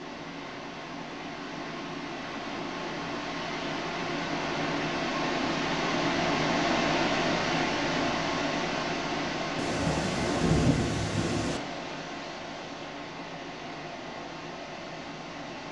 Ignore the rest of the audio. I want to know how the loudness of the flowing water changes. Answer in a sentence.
The volume of the flowing water goes up, then down.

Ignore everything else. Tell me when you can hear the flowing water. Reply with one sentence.
You can hear the flowing water from 0.0 to 15.6 s.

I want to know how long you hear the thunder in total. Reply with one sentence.
You can hear the thunder for 2 seconds altogether.